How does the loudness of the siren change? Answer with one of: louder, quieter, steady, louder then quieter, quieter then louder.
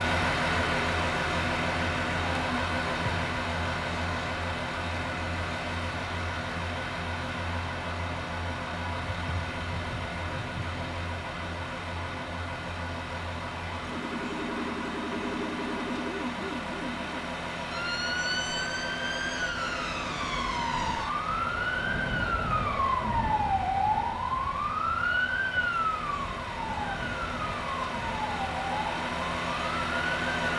louder.